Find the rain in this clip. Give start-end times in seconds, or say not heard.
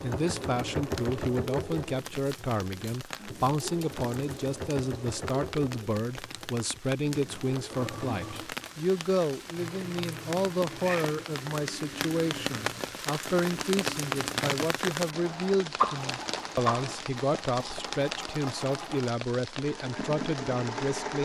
0.0-21.2.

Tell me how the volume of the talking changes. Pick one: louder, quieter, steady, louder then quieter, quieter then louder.
steady.